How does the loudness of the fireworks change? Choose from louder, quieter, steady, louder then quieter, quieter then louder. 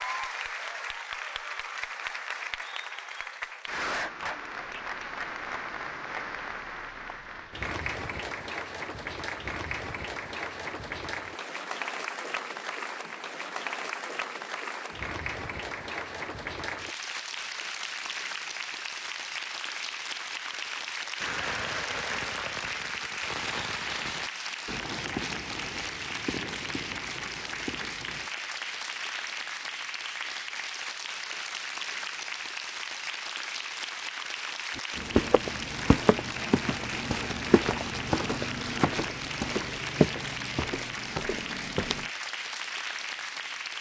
quieter.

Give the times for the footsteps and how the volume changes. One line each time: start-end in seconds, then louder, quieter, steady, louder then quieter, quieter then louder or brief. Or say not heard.
34.8-42.1 quieter.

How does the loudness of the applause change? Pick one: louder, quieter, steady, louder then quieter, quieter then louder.
steady.